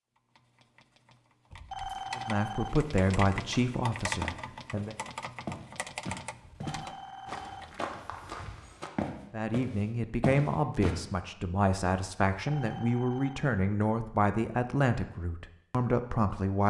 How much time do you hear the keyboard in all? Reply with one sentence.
The keyboard can be heard for 8 seconds in total.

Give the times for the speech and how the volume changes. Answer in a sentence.
You can hear the speech briefly from 2.1 to 5.0 s; and from 9.3 to 16.6 s, at a steady volume.